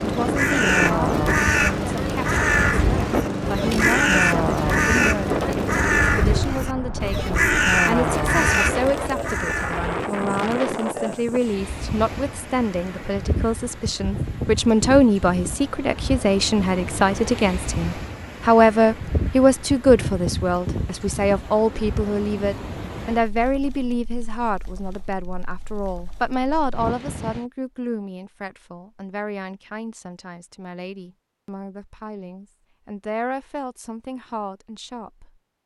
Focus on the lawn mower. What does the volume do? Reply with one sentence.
The volume of the lawn mower stays about the same.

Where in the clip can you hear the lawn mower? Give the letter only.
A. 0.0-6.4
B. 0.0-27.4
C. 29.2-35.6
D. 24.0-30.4
A.